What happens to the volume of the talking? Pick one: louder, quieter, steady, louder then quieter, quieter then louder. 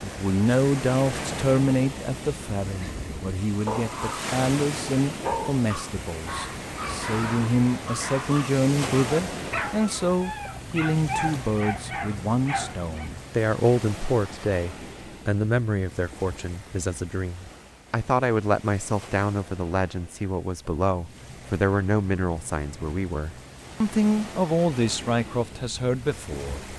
steady.